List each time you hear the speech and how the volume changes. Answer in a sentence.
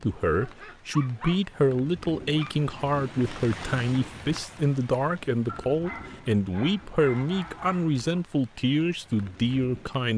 The speech can be heard from 0.0 to 10.1 s, at a steady volume.